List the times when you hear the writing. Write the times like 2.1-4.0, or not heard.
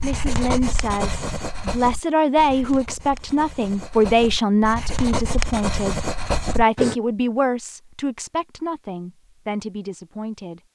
0.0-7.0.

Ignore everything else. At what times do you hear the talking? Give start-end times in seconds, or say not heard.
0.0-10.6.